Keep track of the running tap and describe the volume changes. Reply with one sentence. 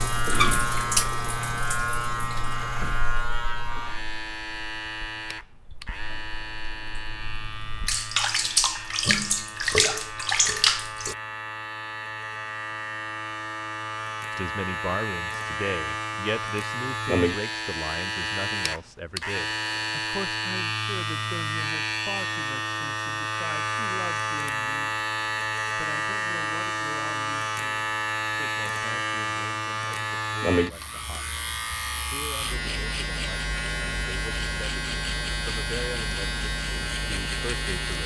The loudness of the running tap goes down, then up.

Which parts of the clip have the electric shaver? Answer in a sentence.
The electric shaver can be heard from 0.0 to 38.0 s.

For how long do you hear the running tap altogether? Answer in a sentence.
The running tap can be heard for 11 seconds in total.